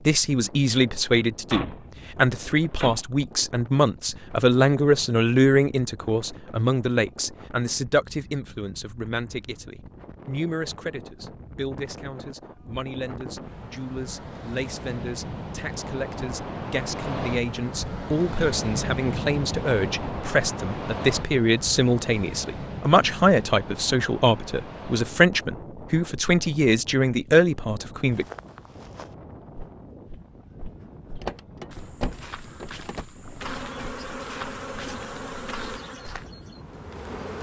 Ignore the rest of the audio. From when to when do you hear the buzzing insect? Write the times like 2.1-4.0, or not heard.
33.4-37.3.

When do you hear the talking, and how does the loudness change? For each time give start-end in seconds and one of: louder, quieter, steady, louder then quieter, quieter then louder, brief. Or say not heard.
0.1-28.2 quieter then louder.